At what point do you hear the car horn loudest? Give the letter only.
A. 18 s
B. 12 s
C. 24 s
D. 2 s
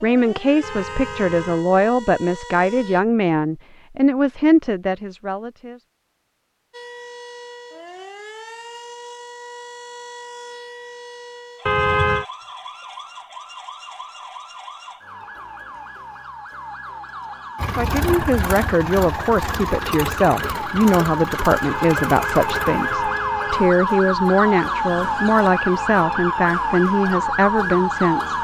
B.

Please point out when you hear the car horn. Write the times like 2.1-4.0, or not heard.
0.6-1.6, 11.7-12.2, 21.6-23.6.